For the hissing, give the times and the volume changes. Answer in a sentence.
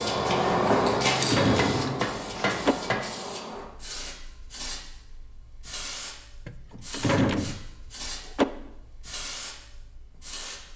The hissing can be heard from 0.0 to 10.7 s, getting quieter.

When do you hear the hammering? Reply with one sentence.
You can hear the hammering from 1.6 to 3.1 s.